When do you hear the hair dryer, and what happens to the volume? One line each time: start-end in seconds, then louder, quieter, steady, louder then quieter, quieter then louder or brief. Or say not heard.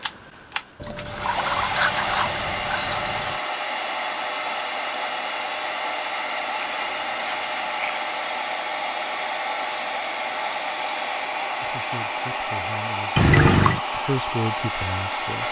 0.0-15.4 steady.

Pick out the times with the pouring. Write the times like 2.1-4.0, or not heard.
0.8-3.4, 6.5-8.0, 13.2-13.8.